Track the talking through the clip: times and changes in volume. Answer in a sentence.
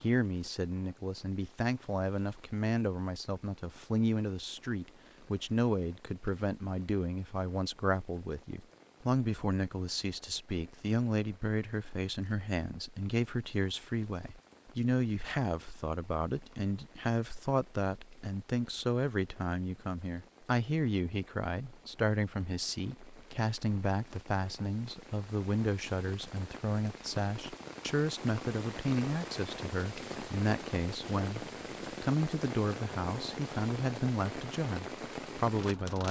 You can hear the talking from 0.0 to 36.0 s, at a steady volume.